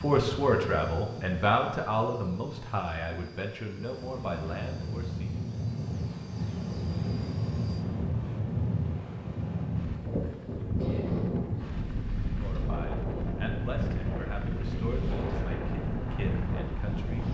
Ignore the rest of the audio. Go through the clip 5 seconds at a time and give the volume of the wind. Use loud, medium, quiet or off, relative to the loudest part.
medium, loud, loud, loud.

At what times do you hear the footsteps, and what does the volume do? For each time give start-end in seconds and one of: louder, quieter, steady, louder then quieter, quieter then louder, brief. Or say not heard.
not heard.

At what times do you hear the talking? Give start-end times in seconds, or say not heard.
0.0-5.4, 12.3-17.2.